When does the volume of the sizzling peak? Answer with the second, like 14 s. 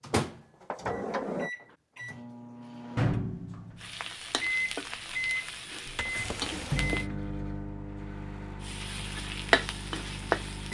10 s.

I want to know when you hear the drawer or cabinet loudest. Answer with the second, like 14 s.
1 s.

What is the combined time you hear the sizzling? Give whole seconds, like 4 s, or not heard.
5 s.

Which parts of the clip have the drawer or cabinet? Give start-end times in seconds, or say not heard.
0.1-1.5, 5.8-7.0.